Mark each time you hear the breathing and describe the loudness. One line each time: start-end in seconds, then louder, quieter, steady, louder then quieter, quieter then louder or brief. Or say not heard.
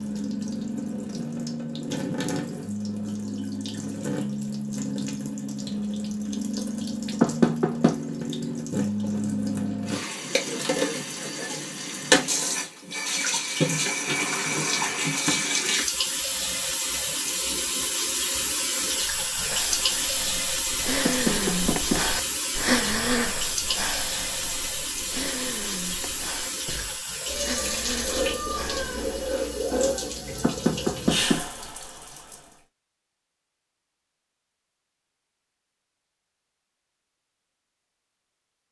18.9-29.2 louder then quieter.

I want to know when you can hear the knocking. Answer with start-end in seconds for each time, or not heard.
7.2-8.0, 21.1-22.1, 30.4-31.4.